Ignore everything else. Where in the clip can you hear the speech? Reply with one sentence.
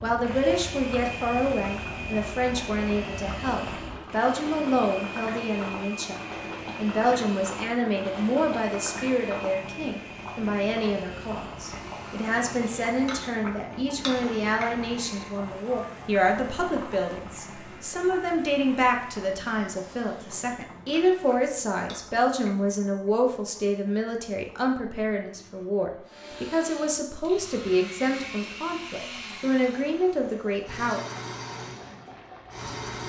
The speech can be heard from 0.0 to 6.2 s and from 6.8 to 31.0 s.